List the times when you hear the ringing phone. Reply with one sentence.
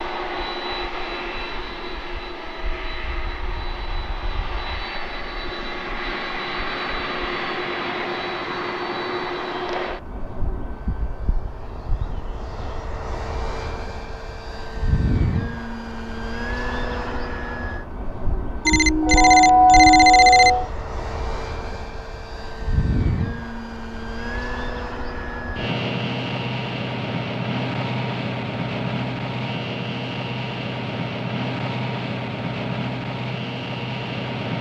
The ringing phone can be heard from 18.6 to 20.6 s.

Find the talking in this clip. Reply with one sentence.
The talking can't be heard in this clip.